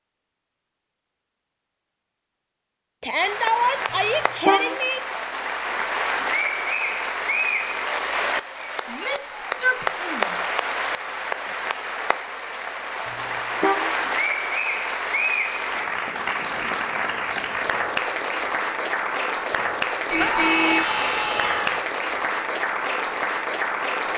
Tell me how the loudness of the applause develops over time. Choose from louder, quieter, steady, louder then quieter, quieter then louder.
steady.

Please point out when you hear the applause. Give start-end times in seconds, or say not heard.
3.1-24.1.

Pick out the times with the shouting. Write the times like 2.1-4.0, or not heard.
3.0-5.0, 8.8-10.5, 20.1-21.8.